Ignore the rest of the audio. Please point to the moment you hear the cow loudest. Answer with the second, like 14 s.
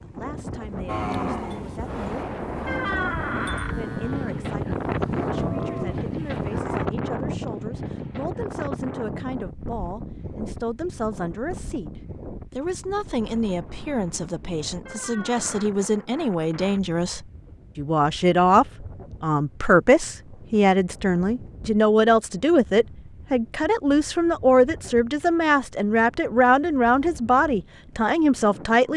1 s.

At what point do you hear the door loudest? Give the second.
3 s.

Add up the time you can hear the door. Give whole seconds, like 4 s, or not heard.
2 s.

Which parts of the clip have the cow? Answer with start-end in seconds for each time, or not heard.
0.8-6.9.